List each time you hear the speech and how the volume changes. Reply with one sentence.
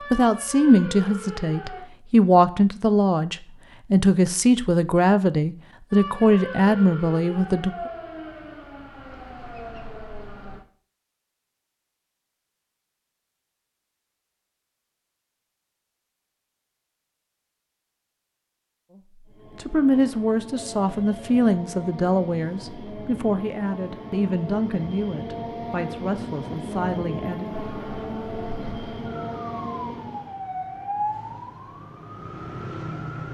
The speech can be heard from 0.1 to 7.9 s, at a steady volume; and from 19.6 to 27.5 s, getting quieter.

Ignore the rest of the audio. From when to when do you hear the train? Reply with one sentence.
You can hear the train from 19.2 to 30.4 s.